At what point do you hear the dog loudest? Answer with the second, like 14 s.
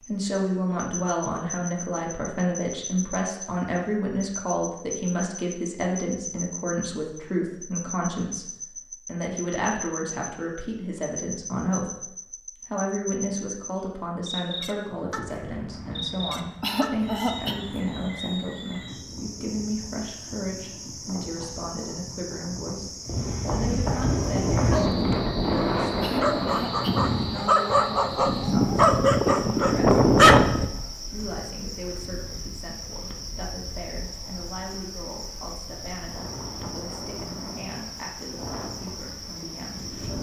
30 s.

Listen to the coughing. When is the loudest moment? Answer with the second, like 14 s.
17 s.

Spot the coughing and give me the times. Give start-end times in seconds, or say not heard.
16.6-17.6, 26.0-27.1.